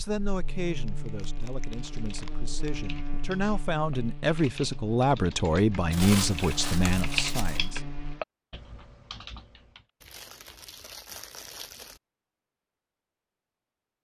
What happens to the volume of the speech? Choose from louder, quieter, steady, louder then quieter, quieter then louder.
louder.